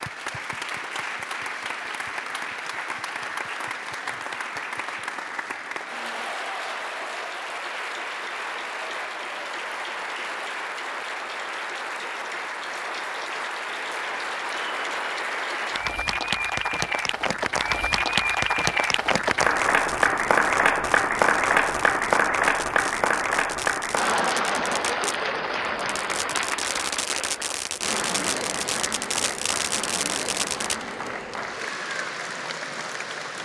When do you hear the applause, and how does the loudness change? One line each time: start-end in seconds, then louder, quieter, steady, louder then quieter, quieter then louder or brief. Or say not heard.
0.0-33.4 louder then quieter.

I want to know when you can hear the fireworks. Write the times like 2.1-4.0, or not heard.
19.5-30.8.